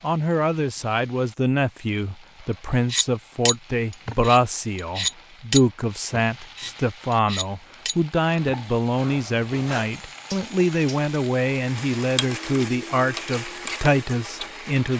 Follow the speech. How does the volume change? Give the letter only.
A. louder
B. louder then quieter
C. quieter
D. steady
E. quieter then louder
D.